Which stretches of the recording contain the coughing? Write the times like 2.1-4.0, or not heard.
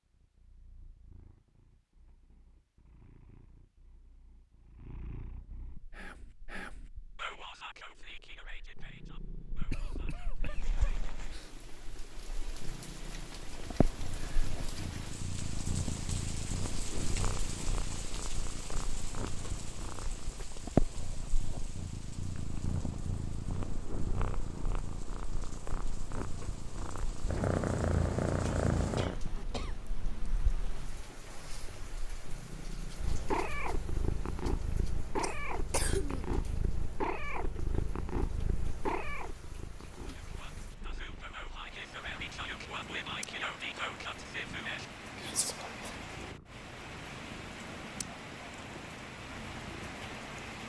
9.7-11.5, 28.4-29.8, 35.2-36.2.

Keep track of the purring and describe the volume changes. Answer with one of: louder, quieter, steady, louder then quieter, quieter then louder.
louder then quieter.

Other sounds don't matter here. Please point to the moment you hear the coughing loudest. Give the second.
36 s.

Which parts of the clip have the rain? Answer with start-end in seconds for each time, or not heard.
10.4-50.6.